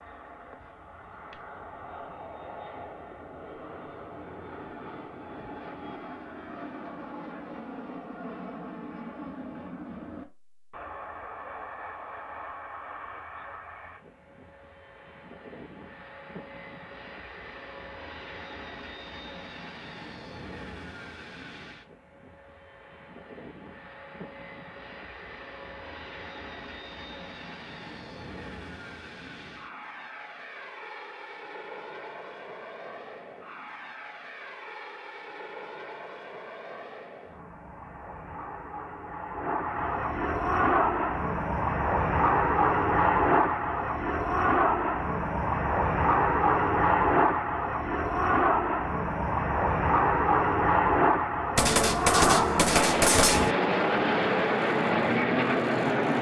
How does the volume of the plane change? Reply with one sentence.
The volume of the plane goes up.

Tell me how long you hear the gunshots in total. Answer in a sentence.
The gunshots can be heard for 2 seconds in total.